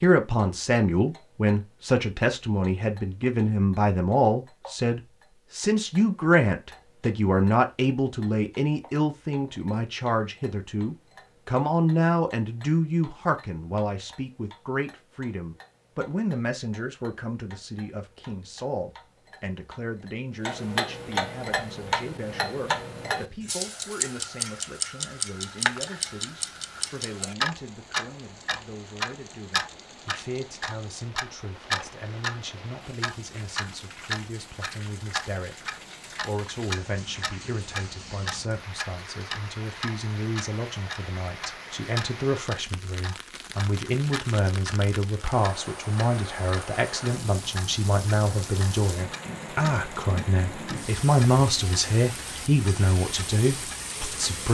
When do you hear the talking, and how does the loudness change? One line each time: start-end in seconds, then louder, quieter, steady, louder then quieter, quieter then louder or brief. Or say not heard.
0.0-54.4 quieter then louder.